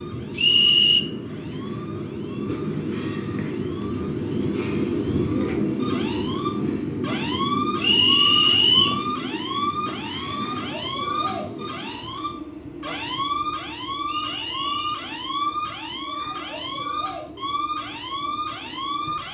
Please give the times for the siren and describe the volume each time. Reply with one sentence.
The siren can be heard from 0.0 to 19.2 s, getting louder.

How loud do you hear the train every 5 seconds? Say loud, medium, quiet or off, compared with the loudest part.
loud, loud, medium, quiet.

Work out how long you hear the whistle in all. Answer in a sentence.
You can hear the whistle for 3 seconds altogether.